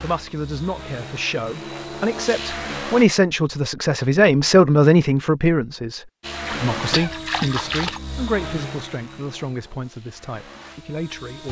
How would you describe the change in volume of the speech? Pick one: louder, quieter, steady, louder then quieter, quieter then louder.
louder then quieter.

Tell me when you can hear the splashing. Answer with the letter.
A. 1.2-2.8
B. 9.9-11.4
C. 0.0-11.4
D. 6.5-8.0
D.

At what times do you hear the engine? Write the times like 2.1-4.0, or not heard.
0.0-3.0, 6.2-11.4.